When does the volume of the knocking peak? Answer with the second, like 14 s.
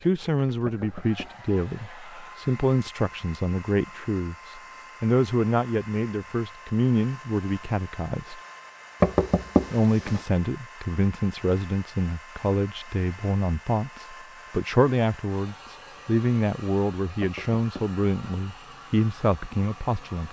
9 s.